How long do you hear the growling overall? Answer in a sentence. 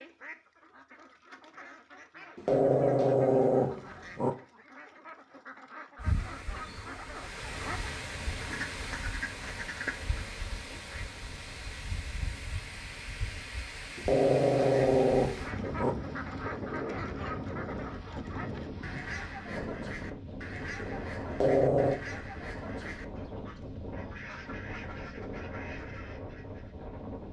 The growling can be heard for 5 seconds in total.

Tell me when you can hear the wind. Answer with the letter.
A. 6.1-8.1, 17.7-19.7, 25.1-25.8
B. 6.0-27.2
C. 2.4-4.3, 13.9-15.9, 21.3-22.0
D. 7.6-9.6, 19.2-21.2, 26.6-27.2
B.